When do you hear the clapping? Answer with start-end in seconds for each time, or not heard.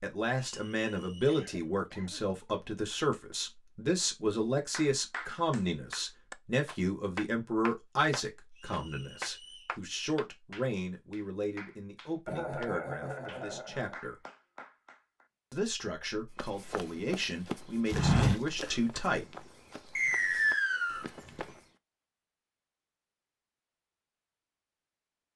4.7-15.2.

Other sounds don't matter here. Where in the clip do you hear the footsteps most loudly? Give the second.
18 s.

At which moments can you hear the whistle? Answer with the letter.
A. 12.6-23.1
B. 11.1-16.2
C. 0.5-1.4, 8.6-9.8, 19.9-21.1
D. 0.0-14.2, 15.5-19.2
C.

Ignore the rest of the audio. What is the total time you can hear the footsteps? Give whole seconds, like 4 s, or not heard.
5 s.